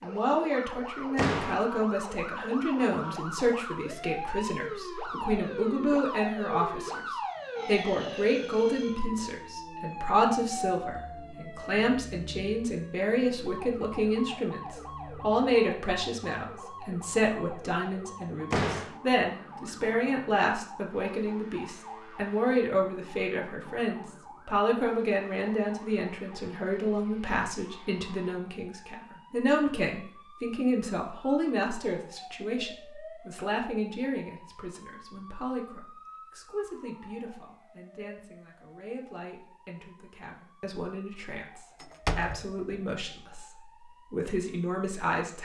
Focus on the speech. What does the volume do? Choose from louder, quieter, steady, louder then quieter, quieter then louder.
quieter.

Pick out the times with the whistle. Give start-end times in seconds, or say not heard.
not heard.